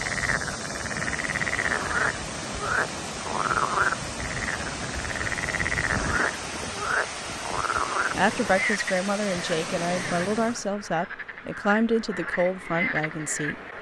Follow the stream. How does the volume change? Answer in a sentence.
The volume of the stream stays about the same.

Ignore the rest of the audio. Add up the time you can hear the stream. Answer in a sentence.
The stream can be heard for 11 seconds in total.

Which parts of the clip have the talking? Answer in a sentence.
The talking can be heard from 8.2 to 13.6 s.